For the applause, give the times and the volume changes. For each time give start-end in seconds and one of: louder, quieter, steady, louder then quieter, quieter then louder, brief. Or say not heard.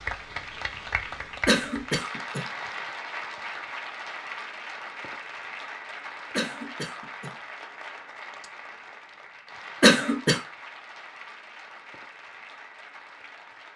0.0-13.7 quieter.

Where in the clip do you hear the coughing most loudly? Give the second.
10 s.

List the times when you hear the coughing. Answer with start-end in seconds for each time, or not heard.
1.4-2.5, 6.3-7.3, 9.8-10.4.